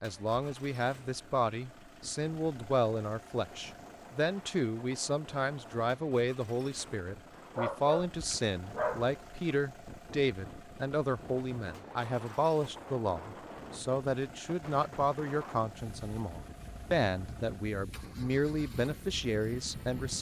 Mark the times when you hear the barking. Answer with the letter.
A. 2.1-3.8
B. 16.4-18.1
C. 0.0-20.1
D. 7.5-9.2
D.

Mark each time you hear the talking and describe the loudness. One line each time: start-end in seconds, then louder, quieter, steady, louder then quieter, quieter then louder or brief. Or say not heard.
0.0-20.1 steady.